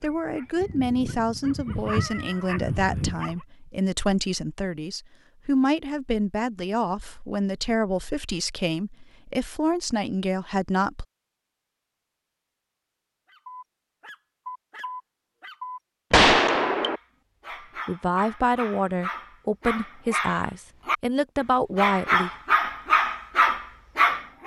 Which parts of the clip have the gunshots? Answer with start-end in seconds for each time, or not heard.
16.1-17.0.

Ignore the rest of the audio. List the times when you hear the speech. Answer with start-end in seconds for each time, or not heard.
0.0-11.1, 17.9-22.3.